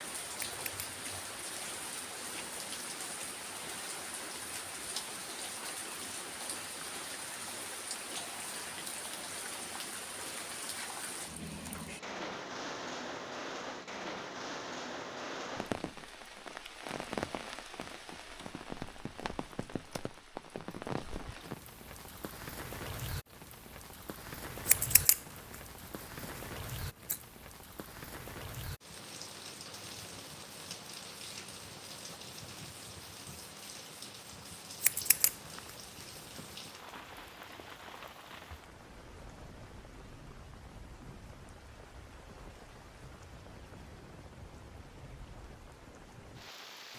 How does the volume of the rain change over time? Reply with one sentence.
The loudness of the rain goes down.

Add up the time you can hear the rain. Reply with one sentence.
The rain can be heard for 47 seconds in total.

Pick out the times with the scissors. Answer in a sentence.
You can hear the scissors from 0.3 to 0.9 s, from 24.6 to 25.2 s and from 34.8 to 35.4 s.